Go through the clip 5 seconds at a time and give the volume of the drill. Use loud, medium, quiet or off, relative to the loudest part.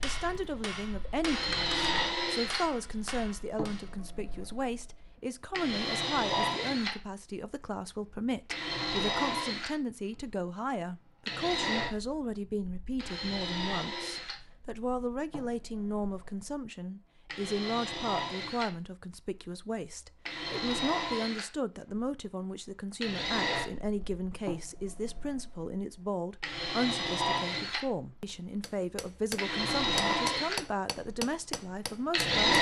medium, medium, medium, quiet, medium, medium, loud.